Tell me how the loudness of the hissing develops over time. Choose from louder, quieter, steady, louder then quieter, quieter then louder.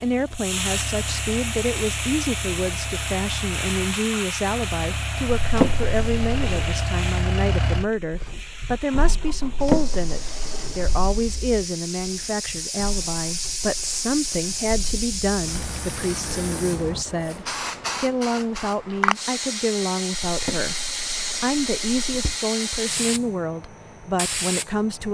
quieter then louder.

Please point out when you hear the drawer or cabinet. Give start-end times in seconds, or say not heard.
5.4-6.8, 9.4-11.2, 20.2-22.4.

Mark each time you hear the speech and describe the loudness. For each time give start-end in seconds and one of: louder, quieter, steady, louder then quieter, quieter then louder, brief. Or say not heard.
0.0-25.0 steady.